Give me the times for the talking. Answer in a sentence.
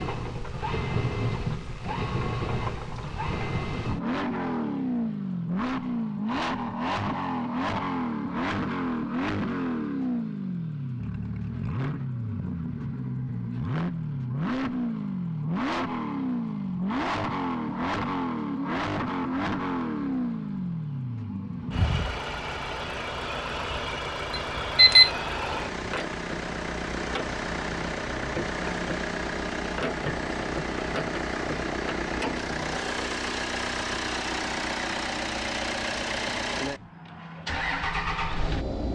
The talking can't be heard in this clip.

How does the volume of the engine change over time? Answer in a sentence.
The loudness of the engine stays about the same.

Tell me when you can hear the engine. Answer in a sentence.
The engine can be heard from 0.0 to 38.9 s.